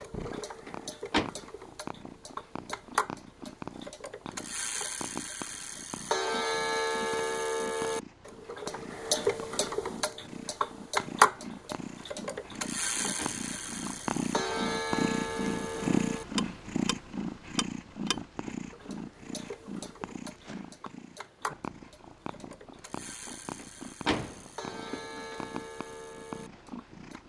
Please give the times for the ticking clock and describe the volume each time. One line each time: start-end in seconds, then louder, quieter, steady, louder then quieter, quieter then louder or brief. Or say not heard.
0.0-27.2 louder then quieter.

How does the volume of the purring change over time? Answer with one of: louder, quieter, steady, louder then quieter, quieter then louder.
louder then quieter.